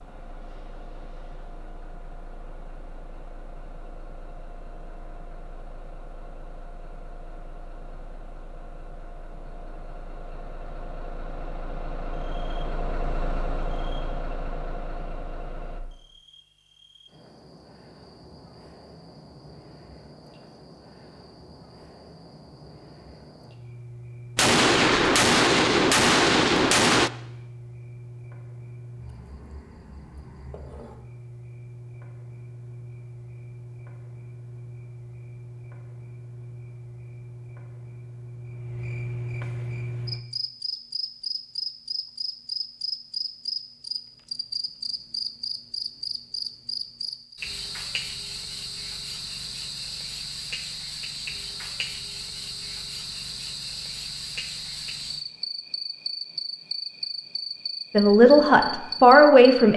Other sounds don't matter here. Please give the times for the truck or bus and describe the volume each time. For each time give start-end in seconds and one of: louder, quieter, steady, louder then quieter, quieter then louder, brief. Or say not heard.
0.0-15.8 louder.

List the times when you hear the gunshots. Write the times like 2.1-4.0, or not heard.
24.4-27.1.